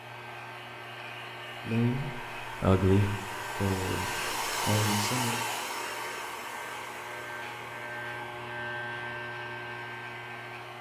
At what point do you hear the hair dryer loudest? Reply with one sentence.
The volume of the hair dryer peaks at 5 seconds.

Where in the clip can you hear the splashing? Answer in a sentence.
You can't hear the splashing here.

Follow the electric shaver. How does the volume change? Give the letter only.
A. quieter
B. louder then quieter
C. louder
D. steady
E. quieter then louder
C.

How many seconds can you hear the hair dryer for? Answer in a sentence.
The hair dryer can be heard for 11 seconds in total.